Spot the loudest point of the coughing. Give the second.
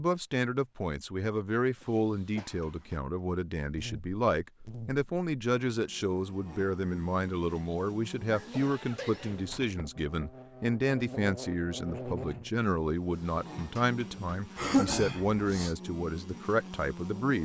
15 s.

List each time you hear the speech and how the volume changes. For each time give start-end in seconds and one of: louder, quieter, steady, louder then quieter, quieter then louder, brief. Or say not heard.
0.0-17.4 steady.